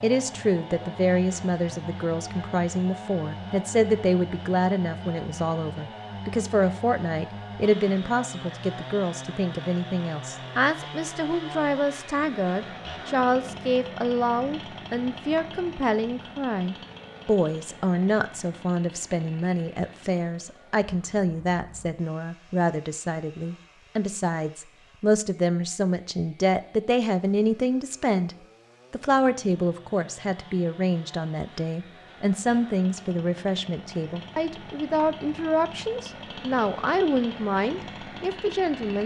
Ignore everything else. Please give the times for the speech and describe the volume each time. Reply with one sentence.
You can hear the speech from 0.0 to 39.0 s, at a steady volume.